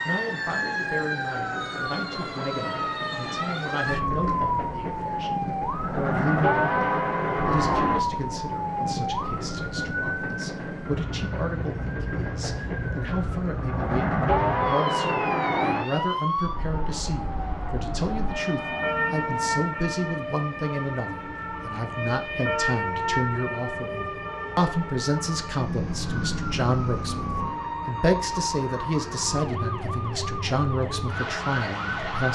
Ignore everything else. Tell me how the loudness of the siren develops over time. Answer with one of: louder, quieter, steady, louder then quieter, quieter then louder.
steady.